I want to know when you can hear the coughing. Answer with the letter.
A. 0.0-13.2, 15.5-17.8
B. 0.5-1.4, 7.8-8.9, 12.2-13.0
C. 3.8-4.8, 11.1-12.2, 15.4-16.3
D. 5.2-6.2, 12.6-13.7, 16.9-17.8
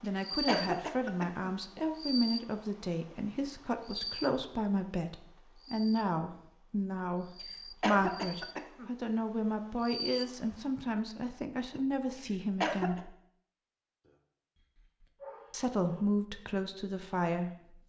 B.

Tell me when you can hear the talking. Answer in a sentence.
The talking can be heard from 0.0 to 13.2 s and from 15.5 to 17.8 s.